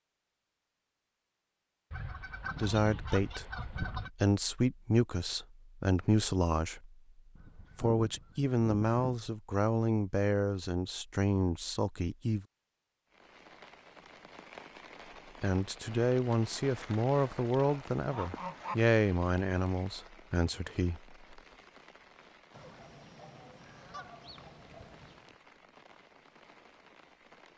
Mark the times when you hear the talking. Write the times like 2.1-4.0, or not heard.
2.5-7.0, 7.6-12.4, 15.4-21.1.